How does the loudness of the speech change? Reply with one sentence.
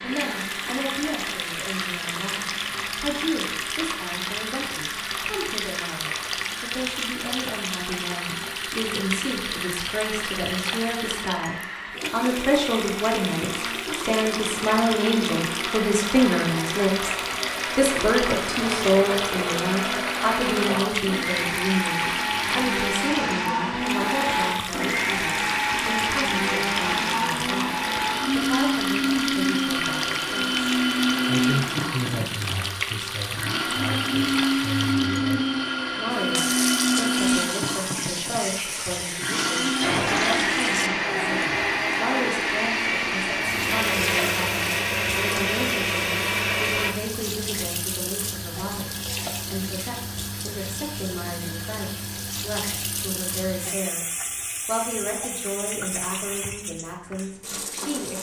The volume of the speech goes up, then down.